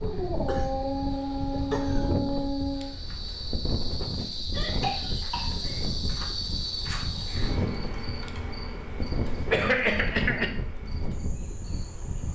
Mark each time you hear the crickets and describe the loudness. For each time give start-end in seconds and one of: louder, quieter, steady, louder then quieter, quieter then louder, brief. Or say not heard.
0.0-12.3 louder then quieter.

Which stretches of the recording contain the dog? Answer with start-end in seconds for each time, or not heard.
0.0-3.0.